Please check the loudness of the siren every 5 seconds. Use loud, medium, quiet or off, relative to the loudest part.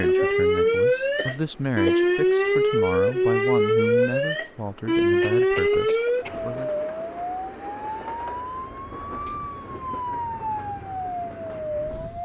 loud, medium, medium.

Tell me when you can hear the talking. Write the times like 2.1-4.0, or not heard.
0.0-6.7.